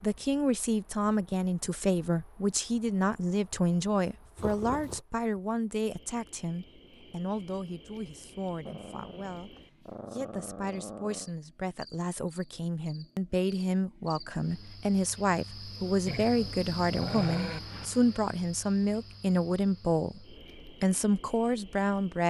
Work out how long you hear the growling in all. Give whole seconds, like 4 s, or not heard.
5 s.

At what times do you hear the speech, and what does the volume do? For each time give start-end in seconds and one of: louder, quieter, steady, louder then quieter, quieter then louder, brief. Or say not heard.
0.0-22.2 quieter then louder.